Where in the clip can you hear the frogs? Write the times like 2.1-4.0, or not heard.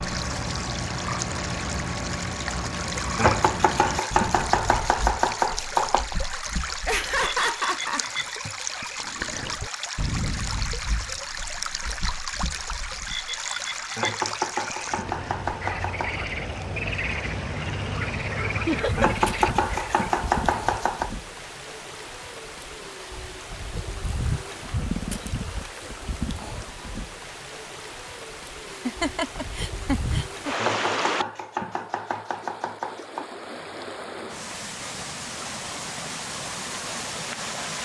0.0-20.1.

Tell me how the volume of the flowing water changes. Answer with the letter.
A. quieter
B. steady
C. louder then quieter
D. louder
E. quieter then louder
B.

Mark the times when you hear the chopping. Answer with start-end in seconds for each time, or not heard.
3.1-6.2, 13.9-16.1, 18.9-21.1, 30.6-33.2.